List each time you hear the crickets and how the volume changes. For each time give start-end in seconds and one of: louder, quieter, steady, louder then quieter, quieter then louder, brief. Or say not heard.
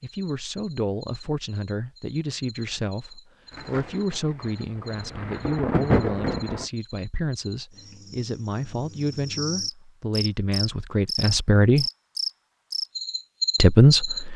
0.0-14.2 louder.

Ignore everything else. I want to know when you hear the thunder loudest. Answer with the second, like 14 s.
6 s.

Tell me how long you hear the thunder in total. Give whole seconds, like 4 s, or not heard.
3 s.